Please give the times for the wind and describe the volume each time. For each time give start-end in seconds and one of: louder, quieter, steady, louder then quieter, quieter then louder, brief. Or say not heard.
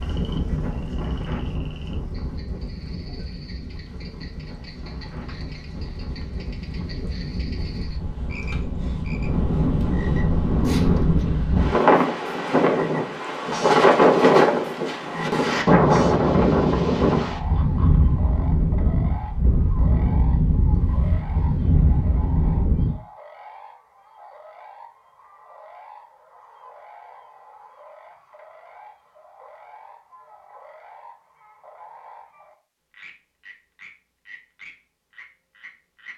0.0-22.9 louder then quieter.